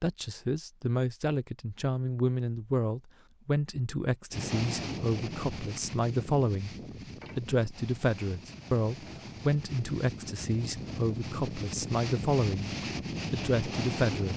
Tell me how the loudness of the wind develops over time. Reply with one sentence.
The loudness of the wind goes down, then up.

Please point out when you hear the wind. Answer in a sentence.
You can hear the wind from 4.3 to 14.3 s.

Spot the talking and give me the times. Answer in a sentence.
The talking can be heard from 0.0 to 6.8 s, from 7.3 to 12.7 s and from 13.3 to 14.3 s.